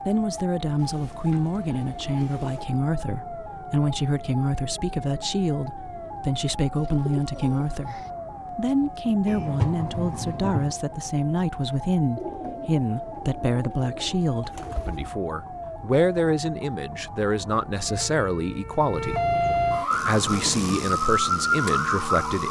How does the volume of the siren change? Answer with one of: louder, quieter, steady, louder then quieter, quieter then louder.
louder.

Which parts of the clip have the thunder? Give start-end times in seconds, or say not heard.
9.2-10.8.